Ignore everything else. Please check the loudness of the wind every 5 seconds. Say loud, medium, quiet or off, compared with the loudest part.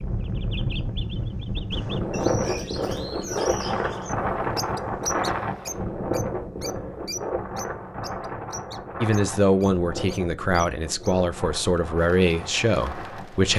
loud, loud, medium.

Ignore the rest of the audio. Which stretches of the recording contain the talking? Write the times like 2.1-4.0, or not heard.
9.0-13.5.